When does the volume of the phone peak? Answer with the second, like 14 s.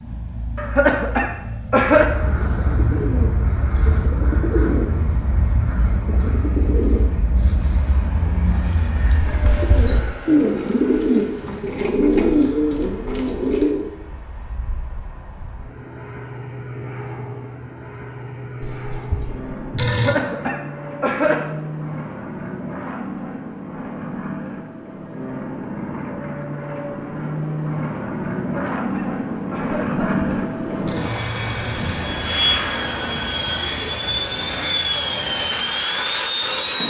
20 s.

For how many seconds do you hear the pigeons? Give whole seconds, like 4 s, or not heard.
12 s.